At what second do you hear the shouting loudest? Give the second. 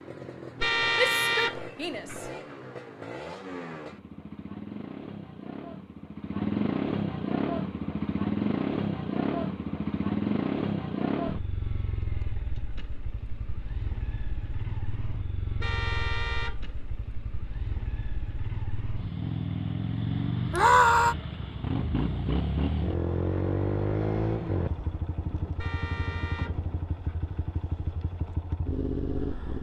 21 s.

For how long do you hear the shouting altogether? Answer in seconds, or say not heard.
2 s.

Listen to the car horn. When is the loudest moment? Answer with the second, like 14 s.
1 s.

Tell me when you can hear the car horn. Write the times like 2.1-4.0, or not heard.
0.6-2.2, 15.6-17.1, 25.6-27.2.